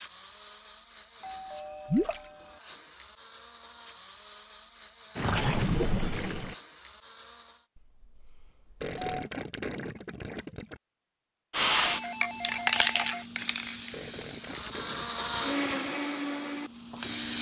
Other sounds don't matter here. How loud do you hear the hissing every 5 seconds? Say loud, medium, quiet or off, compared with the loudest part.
off, off, loud, loud.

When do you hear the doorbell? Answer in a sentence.
You can hear the doorbell from 1.2 to 2.6 s, from 7.8 to 9.2 s and from 11.9 to 13.2 s.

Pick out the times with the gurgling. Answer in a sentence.
The gurgling can be heard from 1.9 to 2.3 s, from 5.2 to 6.5 s, from 8.8 to 10.8 s and from 13.9 to 15.7 s.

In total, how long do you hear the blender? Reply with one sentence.
The blender can be heard for 11 seconds in total.